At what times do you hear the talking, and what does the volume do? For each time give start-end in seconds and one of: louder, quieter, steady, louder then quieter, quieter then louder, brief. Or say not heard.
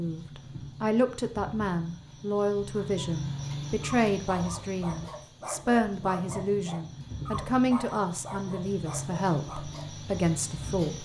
0.0-11.0 steady.